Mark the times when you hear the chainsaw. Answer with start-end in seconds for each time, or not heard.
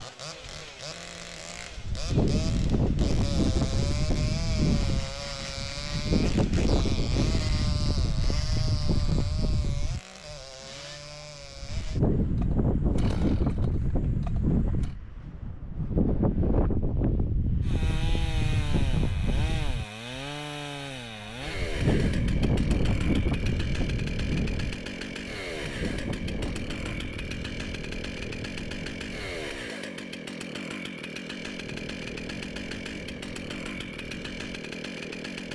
0.0-14.9, 17.6-35.4.